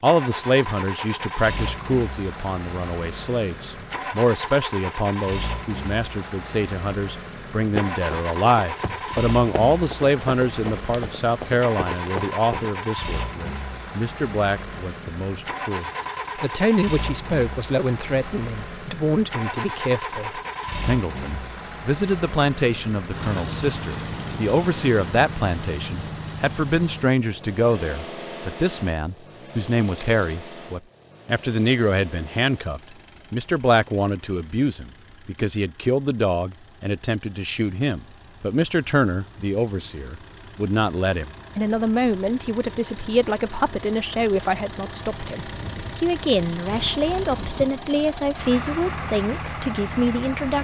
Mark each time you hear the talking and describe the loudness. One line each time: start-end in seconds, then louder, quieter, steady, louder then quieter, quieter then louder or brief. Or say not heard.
0.0-50.6 steady.